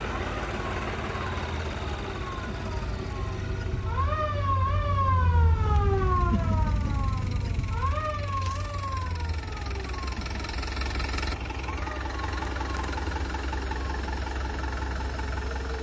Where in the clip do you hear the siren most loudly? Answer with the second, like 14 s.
6 s.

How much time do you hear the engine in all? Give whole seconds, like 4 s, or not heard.
16 s.